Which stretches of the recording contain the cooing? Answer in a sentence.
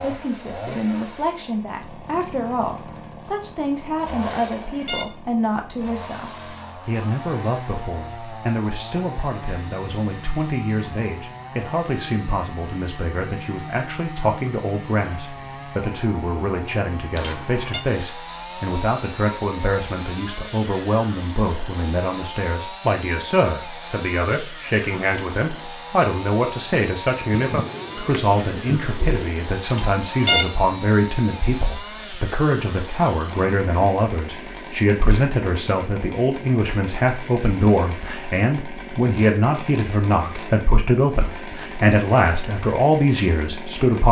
You can hear the cooing from 27.3 to 29.4 s.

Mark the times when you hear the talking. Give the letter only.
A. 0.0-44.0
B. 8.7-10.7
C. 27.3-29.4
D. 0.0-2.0
A.